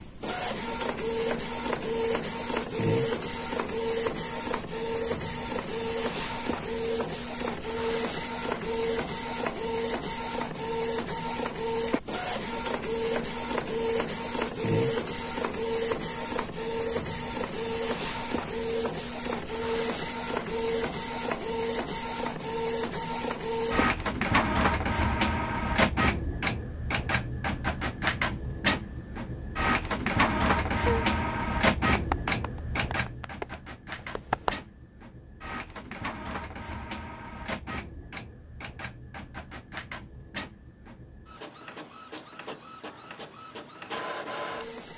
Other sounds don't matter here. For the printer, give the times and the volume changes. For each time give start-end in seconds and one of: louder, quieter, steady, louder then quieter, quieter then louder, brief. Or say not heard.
0.0-44.9 quieter.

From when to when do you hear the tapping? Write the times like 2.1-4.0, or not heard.
31.9-34.5.